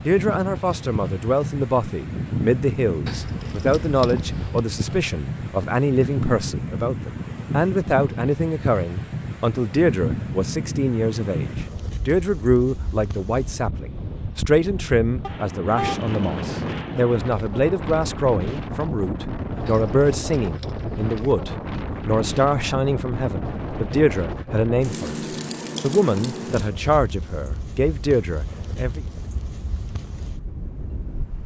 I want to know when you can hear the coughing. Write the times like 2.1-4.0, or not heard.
not heard.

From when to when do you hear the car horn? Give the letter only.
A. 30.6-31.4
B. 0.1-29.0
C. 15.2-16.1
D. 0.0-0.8
C.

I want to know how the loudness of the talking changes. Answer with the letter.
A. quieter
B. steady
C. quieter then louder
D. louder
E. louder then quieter
B.